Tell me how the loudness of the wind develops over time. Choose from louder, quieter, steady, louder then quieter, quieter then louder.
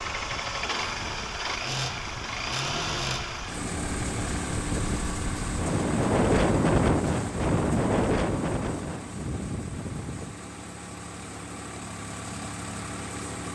louder then quieter.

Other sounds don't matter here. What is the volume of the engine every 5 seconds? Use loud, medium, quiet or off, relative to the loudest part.
loud, medium, medium.